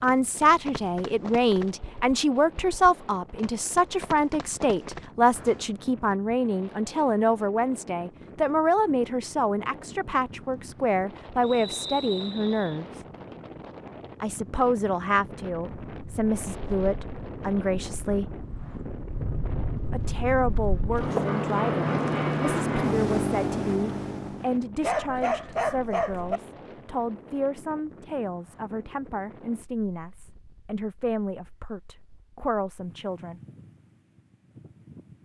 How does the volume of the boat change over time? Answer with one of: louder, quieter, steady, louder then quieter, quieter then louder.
louder.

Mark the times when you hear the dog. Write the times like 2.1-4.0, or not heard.
24.8-26.4.